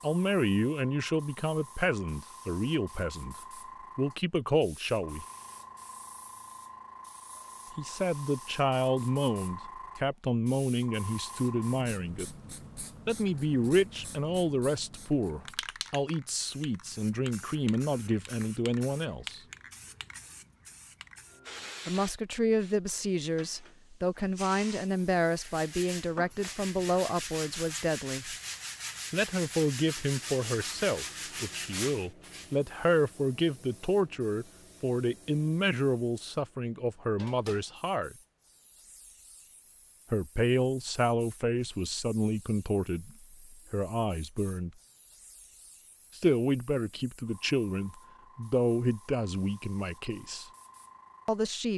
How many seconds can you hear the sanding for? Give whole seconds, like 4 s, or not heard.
7 s.